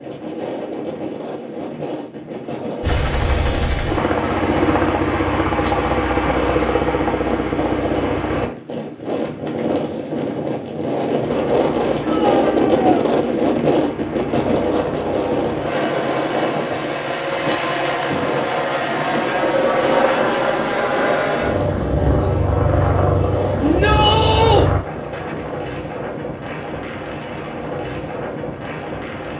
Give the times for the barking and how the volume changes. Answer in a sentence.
You can't hear the barking here.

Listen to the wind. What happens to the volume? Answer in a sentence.
The volume of the wind goes up, then down.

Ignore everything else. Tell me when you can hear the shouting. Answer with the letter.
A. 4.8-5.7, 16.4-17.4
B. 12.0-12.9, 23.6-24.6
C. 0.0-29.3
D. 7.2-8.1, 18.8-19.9
B.